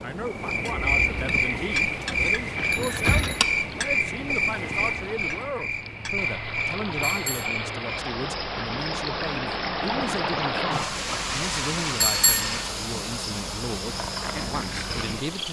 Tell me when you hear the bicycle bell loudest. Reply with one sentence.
The loudest moment of the bicycle bell is at 12 seconds.